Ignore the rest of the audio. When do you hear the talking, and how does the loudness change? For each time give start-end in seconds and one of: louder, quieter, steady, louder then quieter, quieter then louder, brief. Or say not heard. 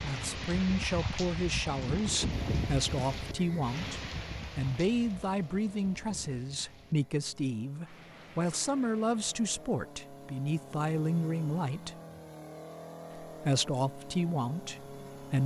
0.0-11.9 steady
13.2-15.4 brief.